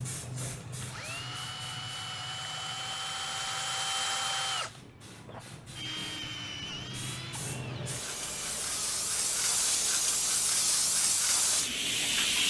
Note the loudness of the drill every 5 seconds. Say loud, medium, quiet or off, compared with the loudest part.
loud, medium, quiet.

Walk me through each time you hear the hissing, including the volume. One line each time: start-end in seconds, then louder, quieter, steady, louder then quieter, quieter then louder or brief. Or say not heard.
0.0-12.4 quieter then louder.